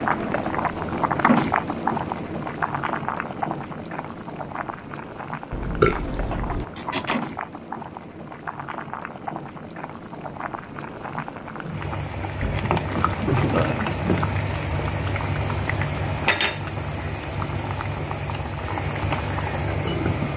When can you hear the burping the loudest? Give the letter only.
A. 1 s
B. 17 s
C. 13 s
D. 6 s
D.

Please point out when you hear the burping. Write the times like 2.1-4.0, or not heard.
5.5-6.7, 12.4-13.8.